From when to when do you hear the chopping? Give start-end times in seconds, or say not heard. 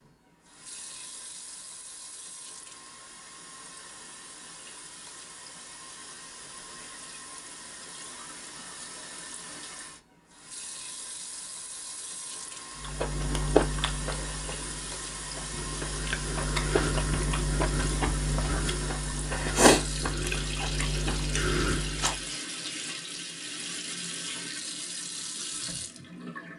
not heard.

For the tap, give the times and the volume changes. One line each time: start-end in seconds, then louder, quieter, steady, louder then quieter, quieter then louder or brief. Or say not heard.
0.0-26.5 louder.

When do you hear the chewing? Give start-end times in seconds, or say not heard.
12.8-22.3.